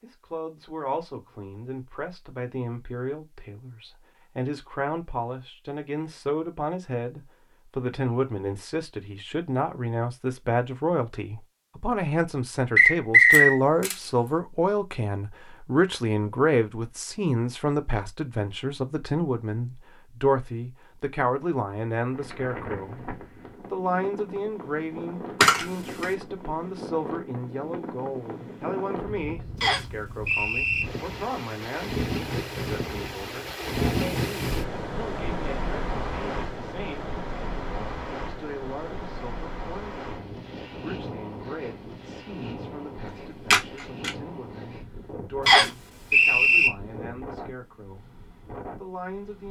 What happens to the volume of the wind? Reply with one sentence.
The volume of the wind goes up, then down.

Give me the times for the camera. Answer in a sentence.
You can hear the camera from 13.3 to 14.3 s, from 25.4 to 26.1 s and from 43.0 to 44.1 s.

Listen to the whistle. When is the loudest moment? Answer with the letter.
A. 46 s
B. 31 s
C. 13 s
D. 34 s
C.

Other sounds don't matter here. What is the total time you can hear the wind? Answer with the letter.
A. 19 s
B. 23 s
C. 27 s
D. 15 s
C.